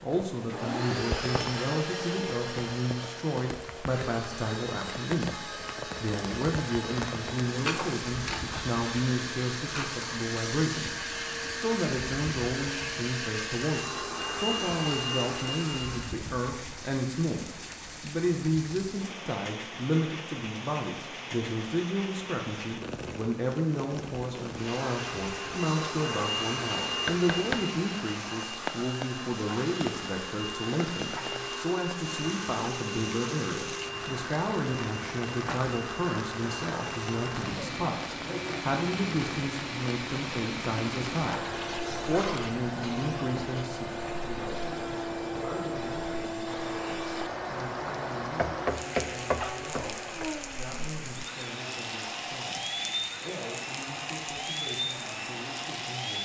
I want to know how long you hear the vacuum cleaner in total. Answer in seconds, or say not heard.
48 s.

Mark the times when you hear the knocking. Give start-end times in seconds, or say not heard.
27.1-27.6, 48.4-50.2.